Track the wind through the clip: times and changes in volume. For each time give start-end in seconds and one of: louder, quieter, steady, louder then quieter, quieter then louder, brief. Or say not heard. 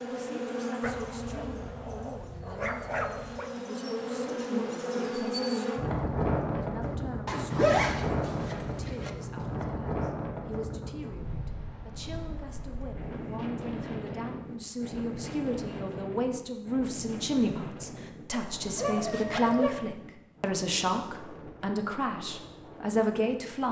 5.8-23.6 quieter.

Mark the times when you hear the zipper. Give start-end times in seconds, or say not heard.
7.2-9.1, 19.1-19.6.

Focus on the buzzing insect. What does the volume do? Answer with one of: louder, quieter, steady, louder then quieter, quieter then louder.
quieter then louder.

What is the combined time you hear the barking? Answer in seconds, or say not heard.
4 s.